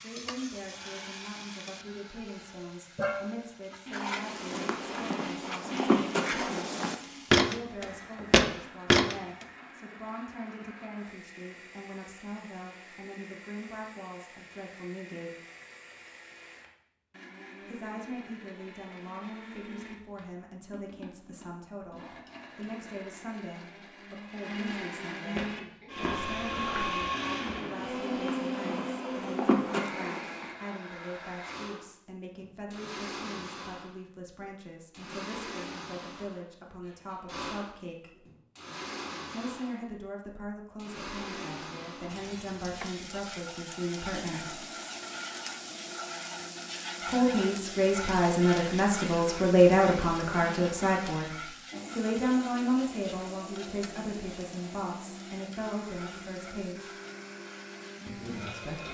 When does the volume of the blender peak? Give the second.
27 s.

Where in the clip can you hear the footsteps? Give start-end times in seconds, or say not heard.
4.2-9.2, 25.4-30.5.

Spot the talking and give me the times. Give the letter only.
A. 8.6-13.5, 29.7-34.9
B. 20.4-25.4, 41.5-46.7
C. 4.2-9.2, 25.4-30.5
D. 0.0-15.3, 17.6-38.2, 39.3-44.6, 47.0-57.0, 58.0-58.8
D.